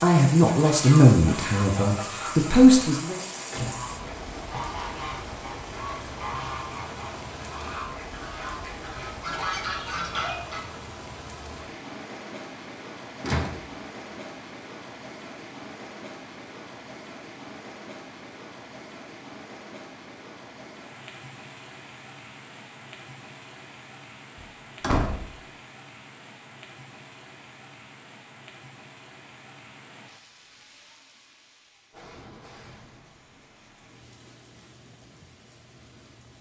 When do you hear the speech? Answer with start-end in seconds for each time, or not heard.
0.0-3.2.